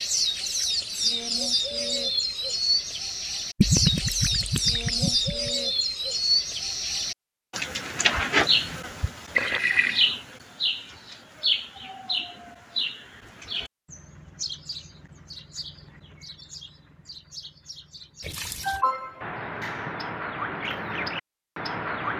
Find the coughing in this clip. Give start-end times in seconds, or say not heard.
18.6-19.3.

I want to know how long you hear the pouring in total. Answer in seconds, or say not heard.
3 s.